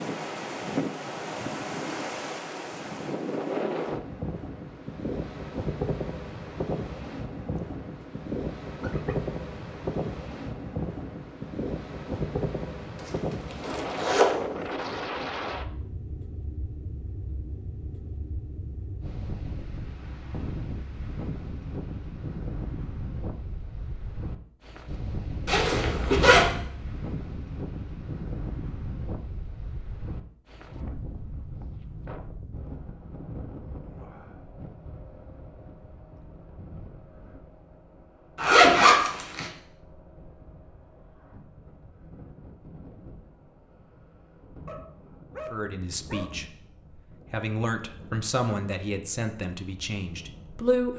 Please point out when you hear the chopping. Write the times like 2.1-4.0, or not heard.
not heard.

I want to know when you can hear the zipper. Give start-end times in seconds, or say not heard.
13.1-14.3, 25.4-26.5, 38.4-39.5.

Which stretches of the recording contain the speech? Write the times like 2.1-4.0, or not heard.
45.5-46.5, 47.3-50.9.